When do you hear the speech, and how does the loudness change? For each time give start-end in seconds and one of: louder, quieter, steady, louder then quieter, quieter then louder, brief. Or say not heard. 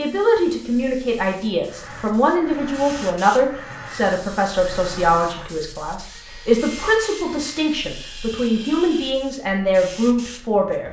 0.0-10.8 steady.